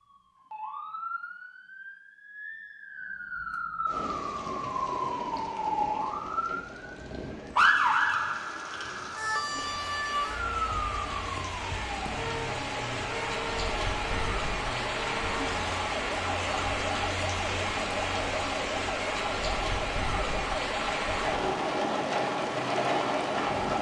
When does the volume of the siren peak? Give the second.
8 s.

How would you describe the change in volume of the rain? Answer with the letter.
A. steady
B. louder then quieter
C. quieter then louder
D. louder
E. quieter
D.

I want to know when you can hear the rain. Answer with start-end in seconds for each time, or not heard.
3.9-23.7.